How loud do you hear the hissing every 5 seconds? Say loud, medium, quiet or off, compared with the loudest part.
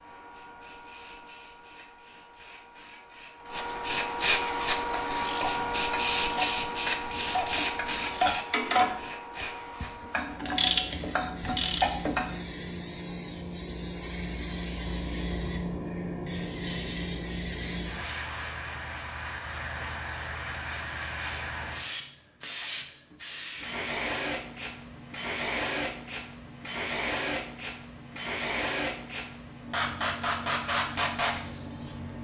loud, loud, medium, medium, medium, loud, loud.